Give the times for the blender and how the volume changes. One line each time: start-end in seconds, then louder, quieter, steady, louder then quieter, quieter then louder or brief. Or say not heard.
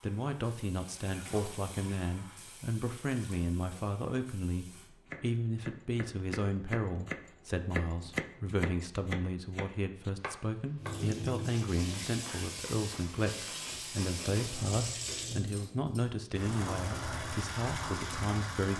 not heard.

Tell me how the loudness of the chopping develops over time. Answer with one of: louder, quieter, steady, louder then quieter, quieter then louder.
louder then quieter.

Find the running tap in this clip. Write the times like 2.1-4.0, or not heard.
0.0-4.9, 10.8-18.7.